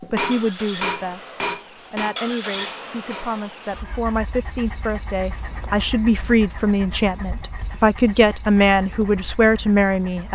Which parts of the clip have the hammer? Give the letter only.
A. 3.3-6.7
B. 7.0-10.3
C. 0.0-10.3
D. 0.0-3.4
D.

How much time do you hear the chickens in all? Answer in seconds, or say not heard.
not heard.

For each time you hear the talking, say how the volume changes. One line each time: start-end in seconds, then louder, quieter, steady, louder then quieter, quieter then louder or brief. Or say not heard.
0.0-10.3 louder.